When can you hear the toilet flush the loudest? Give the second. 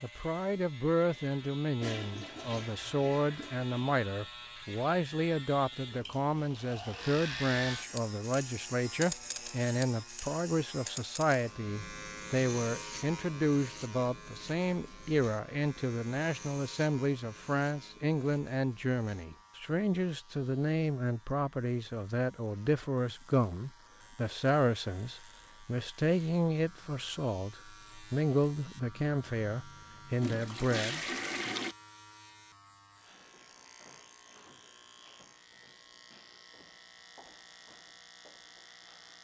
31 s.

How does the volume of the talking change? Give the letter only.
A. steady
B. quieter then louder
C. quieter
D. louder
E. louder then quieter
A.